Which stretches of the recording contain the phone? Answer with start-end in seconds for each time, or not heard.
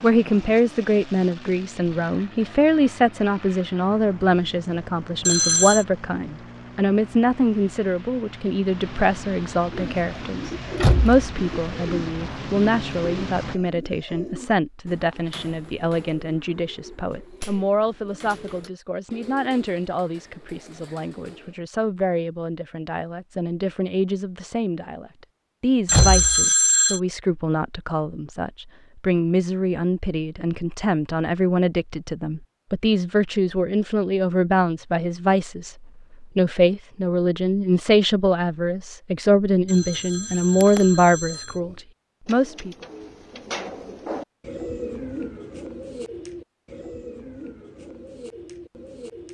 5.2-5.8, 25.9-27.0, 39.6-41.6.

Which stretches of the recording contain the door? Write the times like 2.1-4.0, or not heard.
10.8-11.2, 25.9-26.4.